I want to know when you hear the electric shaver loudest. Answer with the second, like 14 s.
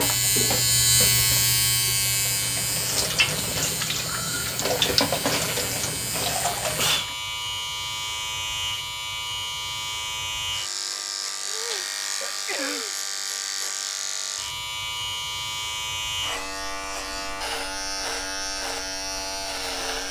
1 s.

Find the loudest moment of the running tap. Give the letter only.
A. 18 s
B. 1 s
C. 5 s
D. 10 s
C.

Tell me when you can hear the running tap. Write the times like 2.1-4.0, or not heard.
0.0-7.2.